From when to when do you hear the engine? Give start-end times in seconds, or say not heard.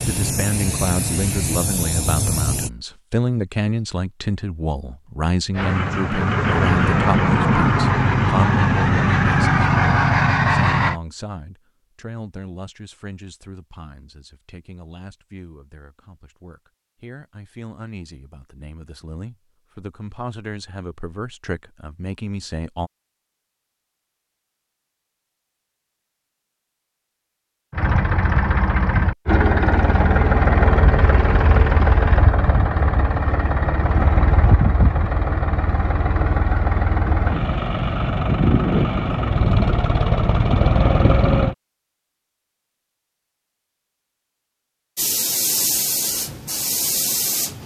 5.5-11.0, 27.7-41.5.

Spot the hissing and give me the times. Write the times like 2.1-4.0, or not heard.
0.0-2.7, 45.0-47.6.